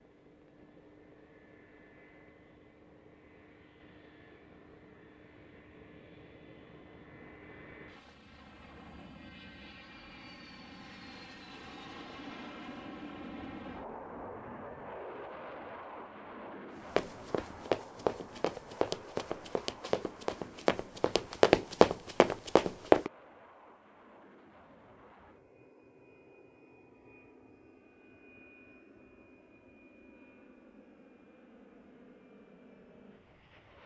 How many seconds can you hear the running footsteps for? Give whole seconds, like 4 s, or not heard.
6 s.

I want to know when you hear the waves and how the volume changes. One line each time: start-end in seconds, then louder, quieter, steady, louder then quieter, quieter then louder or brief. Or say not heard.
not heard.